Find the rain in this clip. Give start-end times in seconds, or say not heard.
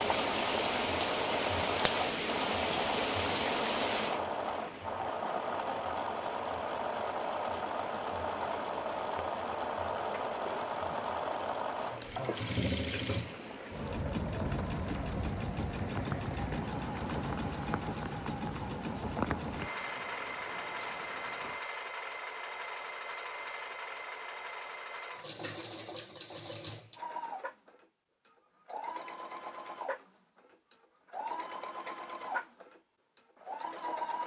0.0-21.6.